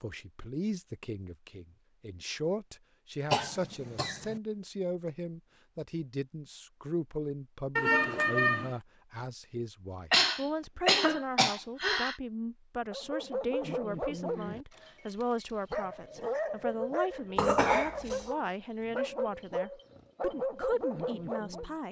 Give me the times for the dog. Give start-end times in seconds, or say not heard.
12.9-21.8.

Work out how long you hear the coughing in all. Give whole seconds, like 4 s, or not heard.
4 s.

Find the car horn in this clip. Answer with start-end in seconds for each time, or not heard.
7.8-8.8.